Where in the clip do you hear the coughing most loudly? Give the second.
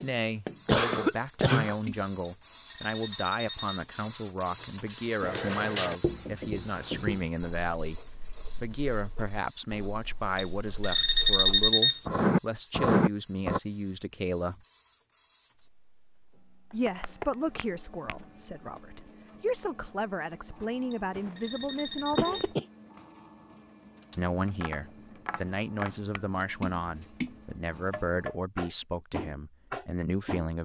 1 s.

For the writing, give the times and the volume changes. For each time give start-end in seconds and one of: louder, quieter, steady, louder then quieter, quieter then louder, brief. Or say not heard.
5.2-13.6 quieter then louder.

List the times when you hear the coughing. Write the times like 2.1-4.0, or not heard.
0.7-1.8, 21.1-22.6.